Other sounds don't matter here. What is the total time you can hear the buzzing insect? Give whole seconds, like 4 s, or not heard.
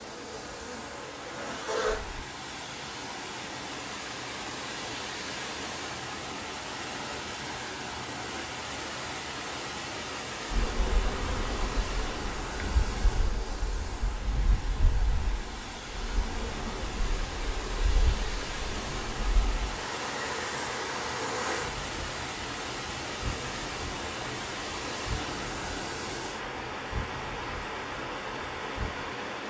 21 s.